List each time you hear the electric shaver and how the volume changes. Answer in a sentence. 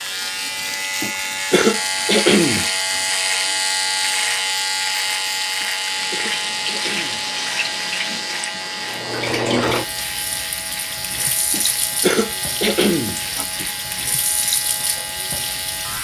You can hear the electric shaver from 0.0 to 15.9 s, getting quieter.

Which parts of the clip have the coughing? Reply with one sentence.
You can hear the coughing from 1.0 to 2.6 s, from 5.6 to 7.8 s and from 11.5 to 13.7 s.